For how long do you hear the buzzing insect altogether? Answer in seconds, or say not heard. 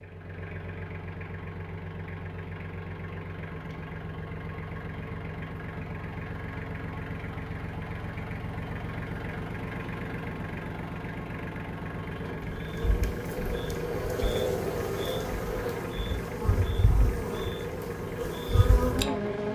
7 s.